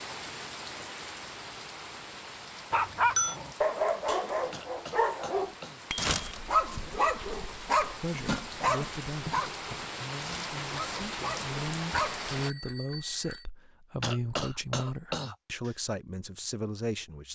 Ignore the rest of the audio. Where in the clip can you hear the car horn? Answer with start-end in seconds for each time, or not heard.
not heard.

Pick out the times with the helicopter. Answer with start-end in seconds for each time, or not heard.
not heard.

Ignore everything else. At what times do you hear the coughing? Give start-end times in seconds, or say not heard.
4.5-5.8, 14.0-15.8.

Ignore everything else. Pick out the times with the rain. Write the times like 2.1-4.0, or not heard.
0.0-12.5.